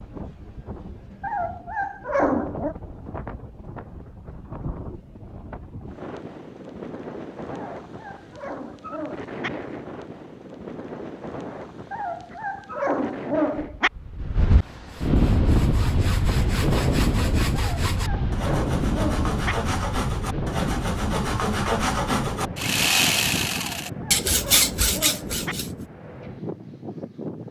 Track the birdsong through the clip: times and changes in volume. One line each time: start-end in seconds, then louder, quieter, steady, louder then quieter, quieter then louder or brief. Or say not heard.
not heard.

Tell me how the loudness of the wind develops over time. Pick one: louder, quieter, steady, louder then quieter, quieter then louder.
louder then quieter.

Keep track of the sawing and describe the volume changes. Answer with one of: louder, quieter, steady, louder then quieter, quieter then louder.
louder.